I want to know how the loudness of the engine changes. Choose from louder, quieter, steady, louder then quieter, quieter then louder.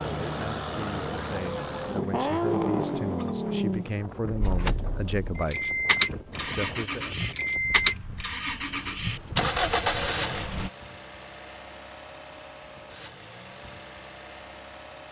quieter.